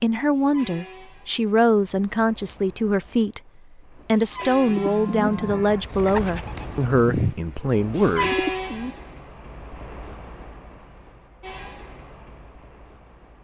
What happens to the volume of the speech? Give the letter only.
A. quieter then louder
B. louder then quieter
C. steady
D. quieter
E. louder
C.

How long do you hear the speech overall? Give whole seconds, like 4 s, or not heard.
8 s.